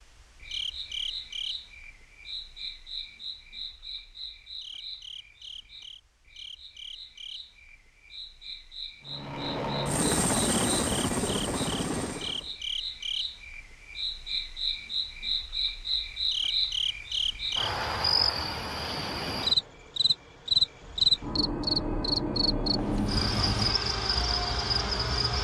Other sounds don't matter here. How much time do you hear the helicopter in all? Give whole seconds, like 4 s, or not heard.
6 s.